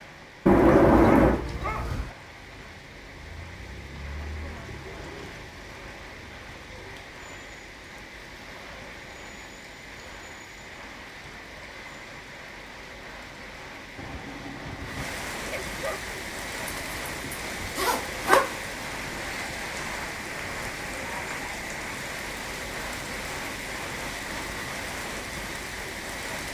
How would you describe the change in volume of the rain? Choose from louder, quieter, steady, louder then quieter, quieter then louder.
louder.